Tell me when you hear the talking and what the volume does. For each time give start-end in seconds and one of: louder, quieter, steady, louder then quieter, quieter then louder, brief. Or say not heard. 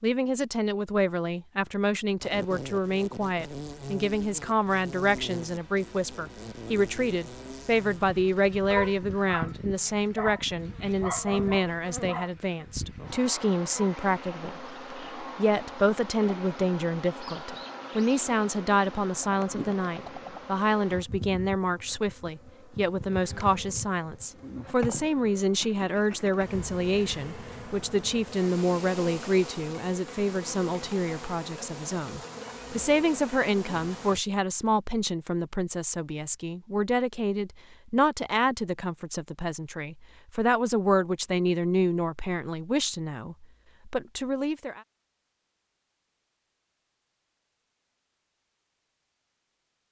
0.0-44.8 steady.